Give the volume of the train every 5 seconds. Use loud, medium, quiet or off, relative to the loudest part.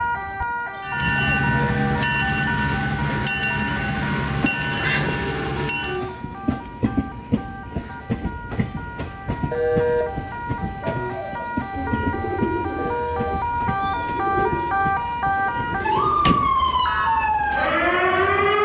loud, medium, medium, quiet.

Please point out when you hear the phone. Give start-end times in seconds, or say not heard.
1.5-2.0, 9.5-10.1, 12.8-13.3.